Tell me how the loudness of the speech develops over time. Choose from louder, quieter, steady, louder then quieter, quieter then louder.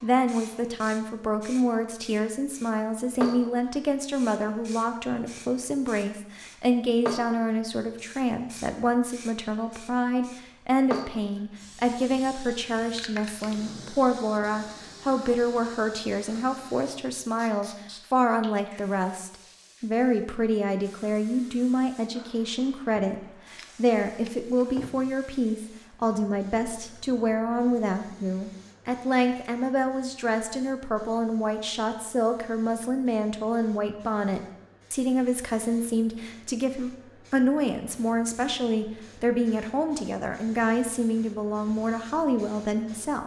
steady.